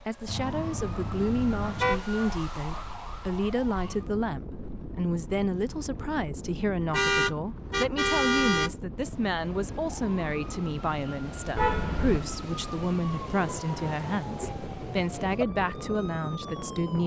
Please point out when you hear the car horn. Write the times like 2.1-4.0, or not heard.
0.2-2.0, 6.9-8.7, 11.6-12.2.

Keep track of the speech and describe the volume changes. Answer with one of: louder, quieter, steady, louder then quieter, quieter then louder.
steady.